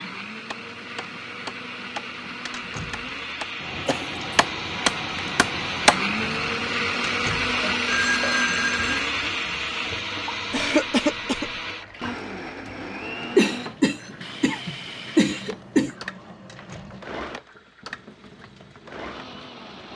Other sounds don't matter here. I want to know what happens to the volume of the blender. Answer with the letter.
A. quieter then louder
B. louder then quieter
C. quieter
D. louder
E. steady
B.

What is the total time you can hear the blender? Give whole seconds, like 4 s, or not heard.
20 s.